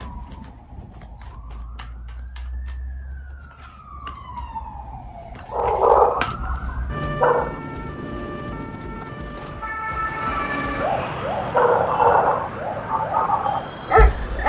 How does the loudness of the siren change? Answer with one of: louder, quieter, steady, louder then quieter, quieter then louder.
louder.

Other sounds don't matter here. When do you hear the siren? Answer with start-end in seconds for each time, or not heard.
0.0-14.4.